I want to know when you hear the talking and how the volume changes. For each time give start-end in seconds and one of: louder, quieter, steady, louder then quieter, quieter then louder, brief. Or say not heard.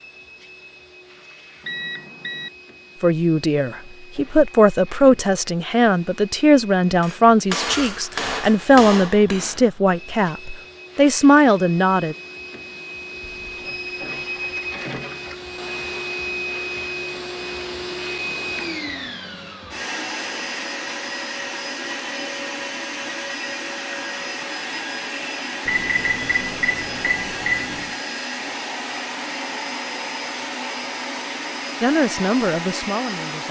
3.0-12.2 steady
31.8-33.4 brief.